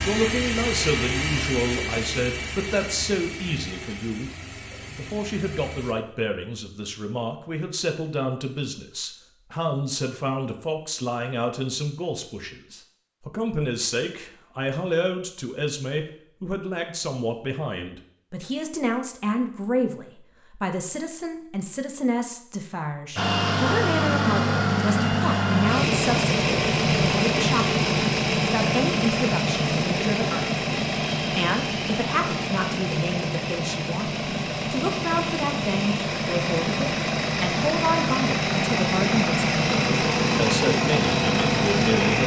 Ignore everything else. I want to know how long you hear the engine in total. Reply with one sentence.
The engine can be heard for 25 seconds in total.